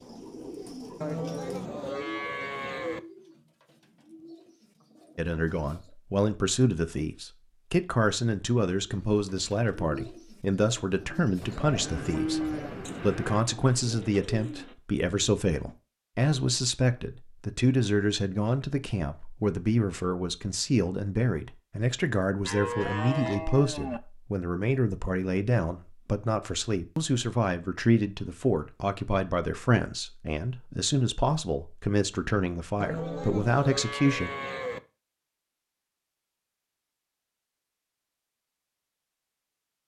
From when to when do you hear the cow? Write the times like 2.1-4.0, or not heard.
1.0-3.0, 11.4-13.4, 22.4-24.0, 32.8-34.8.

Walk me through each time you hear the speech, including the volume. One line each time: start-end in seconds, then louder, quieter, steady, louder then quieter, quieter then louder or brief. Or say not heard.
5.2-34.3 steady.